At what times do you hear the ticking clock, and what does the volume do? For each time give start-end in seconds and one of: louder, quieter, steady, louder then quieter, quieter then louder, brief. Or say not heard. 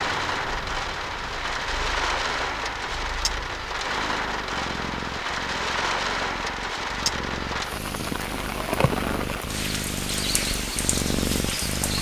not heard.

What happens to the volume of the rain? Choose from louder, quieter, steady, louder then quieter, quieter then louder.
steady.